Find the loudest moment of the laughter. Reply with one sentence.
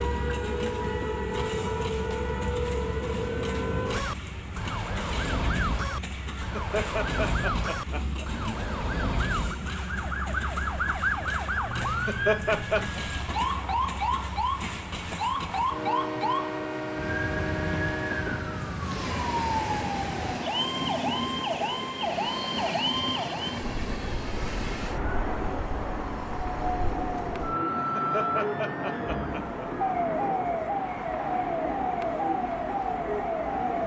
The volume of the laughter peaks at 12 seconds.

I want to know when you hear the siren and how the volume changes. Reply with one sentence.
You can hear the siren from 0.0 to 33.8 s, at a steady volume.